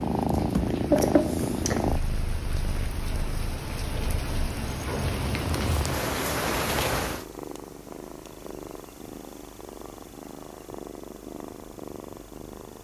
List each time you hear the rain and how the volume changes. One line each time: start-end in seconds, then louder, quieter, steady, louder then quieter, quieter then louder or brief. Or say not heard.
0.0-7.2 louder.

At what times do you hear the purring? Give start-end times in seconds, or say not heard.
0.0-12.7.